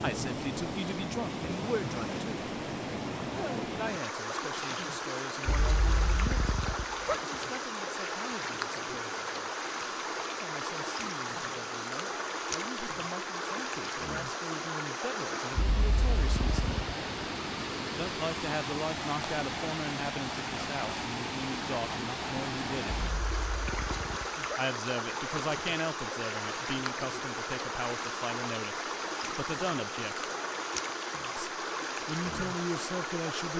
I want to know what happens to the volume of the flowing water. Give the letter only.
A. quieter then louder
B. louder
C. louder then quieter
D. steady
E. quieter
D.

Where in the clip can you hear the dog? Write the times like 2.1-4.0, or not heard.
5.5-7.2, 15.6-16.9, 23.0-24.6.